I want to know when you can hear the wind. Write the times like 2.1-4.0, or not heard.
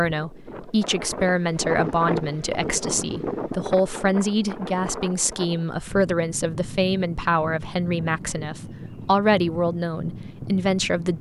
0.0-11.1.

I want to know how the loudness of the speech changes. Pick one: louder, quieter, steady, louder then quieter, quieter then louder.
steady.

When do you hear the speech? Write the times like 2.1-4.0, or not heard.
0.0-11.1.